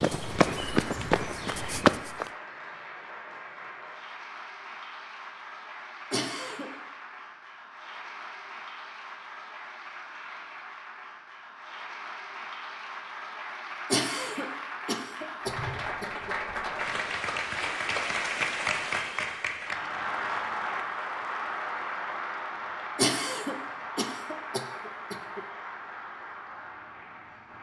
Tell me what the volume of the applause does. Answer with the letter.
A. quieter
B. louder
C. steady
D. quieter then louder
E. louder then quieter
E.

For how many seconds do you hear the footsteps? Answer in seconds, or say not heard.
2 s.